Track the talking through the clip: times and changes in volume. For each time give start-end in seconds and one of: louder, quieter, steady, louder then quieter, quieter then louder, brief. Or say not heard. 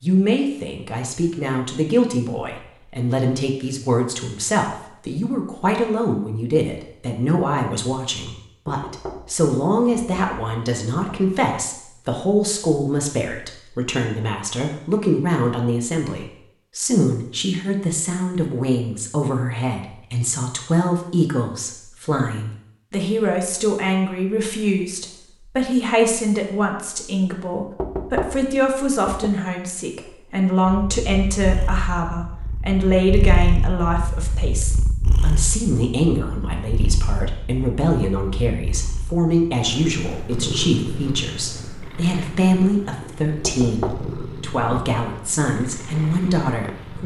0.0-47.0 steady.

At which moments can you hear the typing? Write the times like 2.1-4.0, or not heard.
not heard.